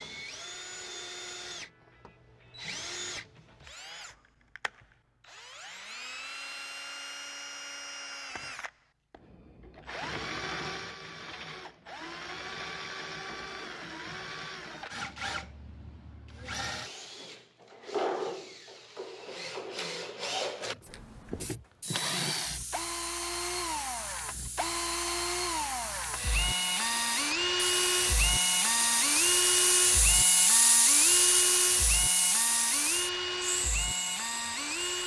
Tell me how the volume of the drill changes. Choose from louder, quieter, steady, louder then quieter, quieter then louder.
louder.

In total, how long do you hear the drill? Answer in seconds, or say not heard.
35 s.